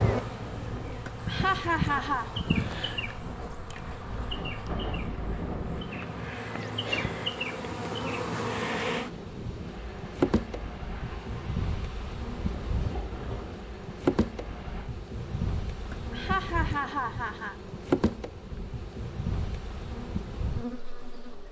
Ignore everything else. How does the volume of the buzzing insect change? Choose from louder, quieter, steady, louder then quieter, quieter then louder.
steady.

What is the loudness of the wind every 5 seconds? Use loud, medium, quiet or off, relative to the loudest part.
loud, loud, medium, off, off.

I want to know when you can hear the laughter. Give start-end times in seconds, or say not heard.
1.1-2.4, 15.9-17.6.